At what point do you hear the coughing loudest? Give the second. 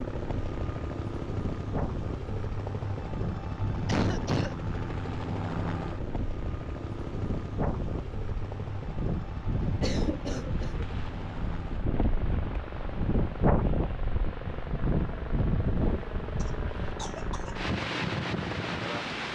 4 s.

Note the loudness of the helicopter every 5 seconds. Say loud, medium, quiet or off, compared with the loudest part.
loud, loud, medium, loud.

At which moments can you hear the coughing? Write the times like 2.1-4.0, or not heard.
3.9-4.5, 9.7-10.8, 16.4-17.6.